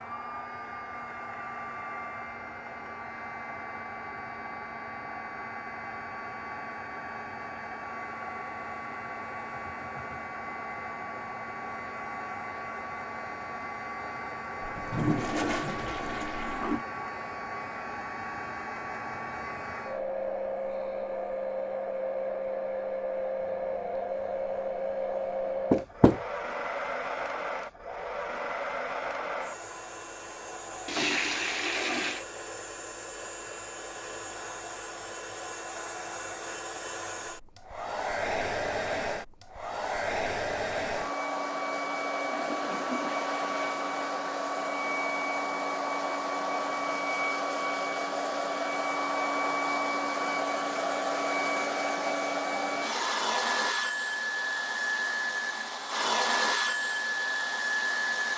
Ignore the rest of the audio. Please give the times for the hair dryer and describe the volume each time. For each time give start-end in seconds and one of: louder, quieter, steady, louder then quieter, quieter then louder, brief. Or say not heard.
0.0-58.3 louder.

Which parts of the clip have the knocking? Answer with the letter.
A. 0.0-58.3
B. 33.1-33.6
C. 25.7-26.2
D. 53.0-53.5
C.